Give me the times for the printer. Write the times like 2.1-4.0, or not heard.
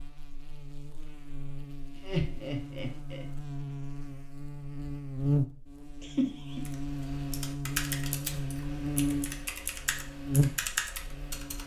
not heard.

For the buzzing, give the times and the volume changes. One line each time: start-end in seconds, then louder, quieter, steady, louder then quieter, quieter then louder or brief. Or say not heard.
0.0-11.6 louder.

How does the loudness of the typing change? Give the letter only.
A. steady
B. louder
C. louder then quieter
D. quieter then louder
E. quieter
D.